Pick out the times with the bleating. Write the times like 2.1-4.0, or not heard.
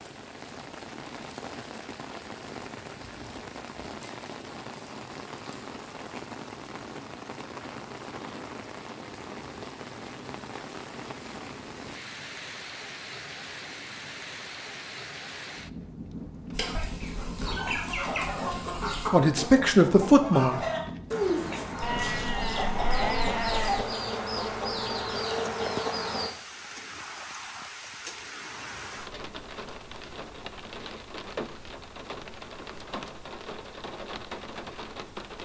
21.8-23.9.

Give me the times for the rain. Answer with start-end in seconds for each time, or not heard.
0.0-35.4.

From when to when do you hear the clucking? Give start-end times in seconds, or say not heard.
16.5-26.3.